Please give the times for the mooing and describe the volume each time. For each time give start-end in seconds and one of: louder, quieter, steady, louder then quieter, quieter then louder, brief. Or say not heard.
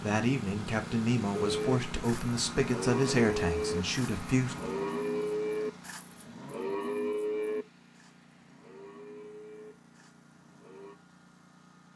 1.3-10.9 quieter.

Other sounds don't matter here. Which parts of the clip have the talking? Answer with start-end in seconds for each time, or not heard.
0.0-4.5.